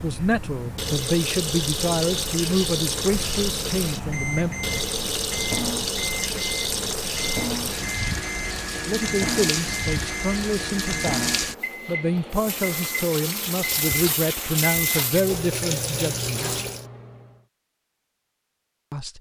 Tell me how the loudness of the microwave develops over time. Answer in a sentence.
The volume of the microwave stays about the same.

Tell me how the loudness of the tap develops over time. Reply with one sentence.
The volume of the tap stays about the same.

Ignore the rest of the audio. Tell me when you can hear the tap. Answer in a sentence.
The tap can be heard from 0.0 to 16.9 s.